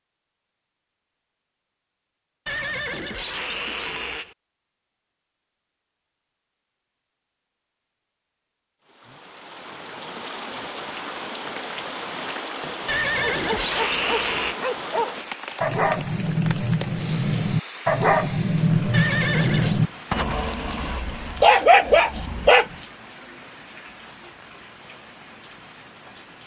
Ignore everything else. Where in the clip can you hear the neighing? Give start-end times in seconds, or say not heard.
2.5-4.3, 12.8-14.6, 18.9-19.8.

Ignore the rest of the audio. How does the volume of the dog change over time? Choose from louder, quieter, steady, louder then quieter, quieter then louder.
louder.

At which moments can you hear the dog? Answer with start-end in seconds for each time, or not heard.
13.2-22.7.